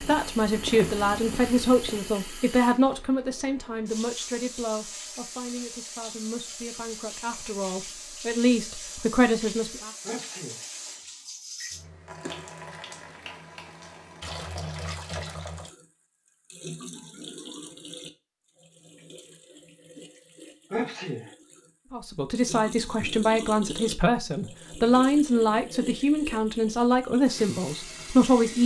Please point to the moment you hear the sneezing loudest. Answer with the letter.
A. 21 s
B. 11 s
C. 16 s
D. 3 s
A.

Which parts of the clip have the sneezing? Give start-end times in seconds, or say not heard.
10.1-10.7, 20.7-21.3.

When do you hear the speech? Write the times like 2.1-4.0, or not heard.
0.0-9.9, 21.9-28.6.